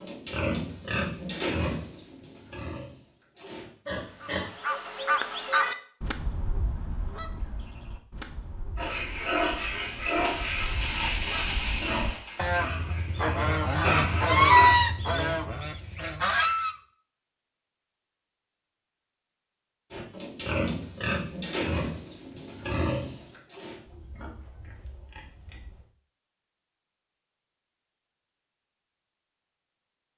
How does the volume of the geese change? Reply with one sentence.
The volume of the geese goes down, then up.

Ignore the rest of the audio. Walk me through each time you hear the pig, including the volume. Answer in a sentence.
The pig can be heard from 0.0 to 4.5 s, getting quieter then louder; from 8.8 to 14.8 s, getting quieter then louder; and from 19.9 to 25.9 s, getting quieter.